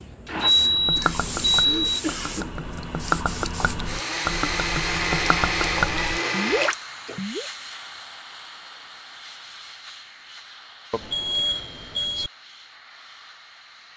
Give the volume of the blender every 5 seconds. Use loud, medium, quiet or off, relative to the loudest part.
medium, loud, off.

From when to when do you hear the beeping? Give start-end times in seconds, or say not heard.
0.4-2.0, 10.9-12.3.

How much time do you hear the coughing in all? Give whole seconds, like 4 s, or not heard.
2 s.